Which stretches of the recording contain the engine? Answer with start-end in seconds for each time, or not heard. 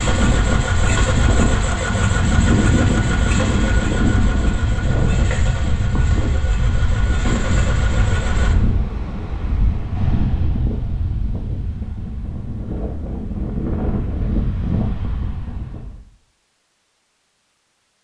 0.0-8.6.